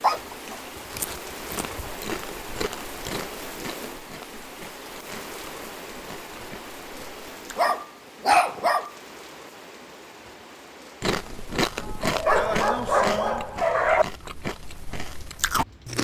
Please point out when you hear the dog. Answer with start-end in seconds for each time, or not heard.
0.0-1.9, 7.5-8.9, 12.0-14.1.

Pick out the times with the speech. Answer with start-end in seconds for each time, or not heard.
not heard.